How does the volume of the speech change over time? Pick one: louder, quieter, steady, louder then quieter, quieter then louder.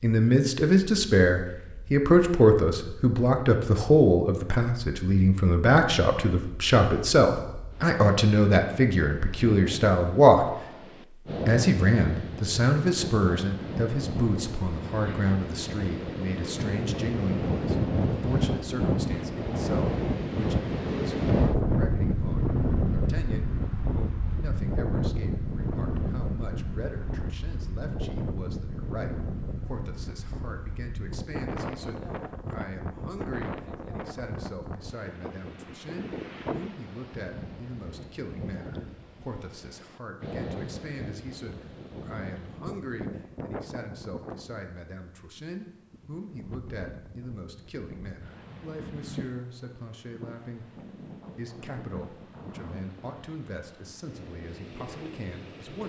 quieter.